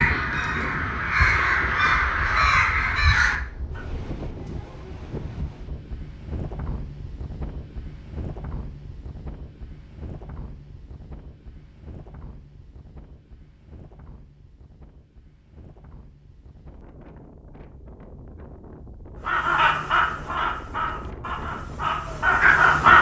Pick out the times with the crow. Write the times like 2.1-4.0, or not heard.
0.0-3.9, 19.2-22.9.